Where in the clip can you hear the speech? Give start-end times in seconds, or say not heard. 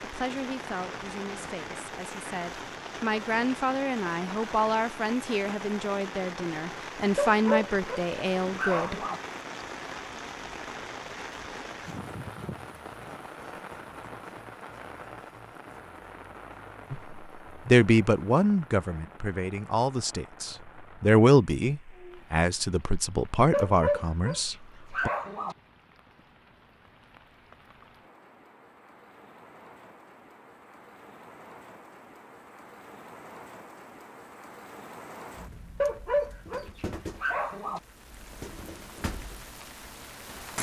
0.0-9.0, 16.9-25.1.